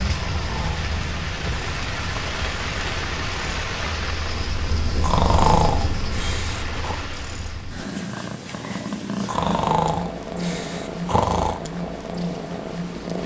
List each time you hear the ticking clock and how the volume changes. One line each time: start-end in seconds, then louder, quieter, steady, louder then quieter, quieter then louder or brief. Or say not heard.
not heard.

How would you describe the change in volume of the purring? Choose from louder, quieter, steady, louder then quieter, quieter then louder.
louder.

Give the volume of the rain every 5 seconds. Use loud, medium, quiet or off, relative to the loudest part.
loud, medium, off.